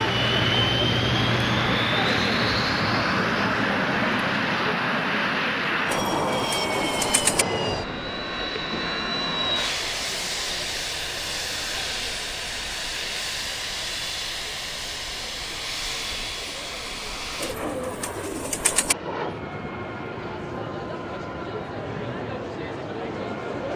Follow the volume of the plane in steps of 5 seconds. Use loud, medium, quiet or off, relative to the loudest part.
loud, loud, medium, medium, quiet.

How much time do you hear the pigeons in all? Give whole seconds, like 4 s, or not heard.
3 s.